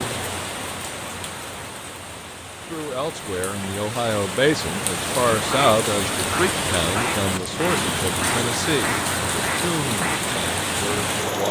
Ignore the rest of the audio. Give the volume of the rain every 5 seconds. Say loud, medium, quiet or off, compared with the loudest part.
medium, loud, loud.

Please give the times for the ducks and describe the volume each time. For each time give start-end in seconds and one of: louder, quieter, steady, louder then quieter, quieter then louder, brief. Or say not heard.
5.5-10.2 steady.